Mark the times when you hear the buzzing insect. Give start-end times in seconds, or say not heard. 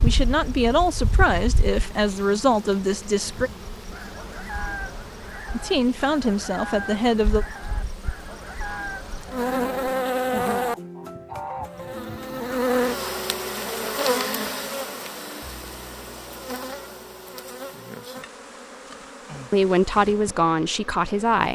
0.0-21.5.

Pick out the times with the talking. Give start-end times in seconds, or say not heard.
0.0-3.5, 5.5-7.5, 19.5-21.5.